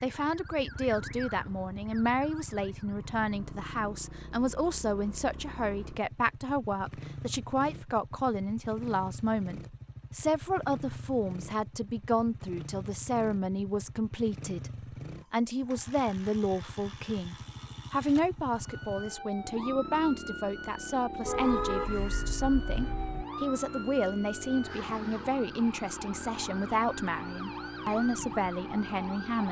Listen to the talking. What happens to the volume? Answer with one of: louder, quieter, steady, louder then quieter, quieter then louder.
steady.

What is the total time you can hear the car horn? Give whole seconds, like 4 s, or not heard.
2 s.